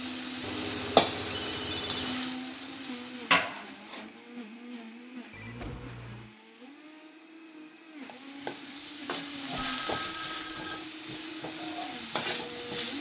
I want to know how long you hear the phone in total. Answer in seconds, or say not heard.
4 s.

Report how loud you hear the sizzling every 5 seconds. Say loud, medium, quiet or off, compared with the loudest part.
loud, medium, medium.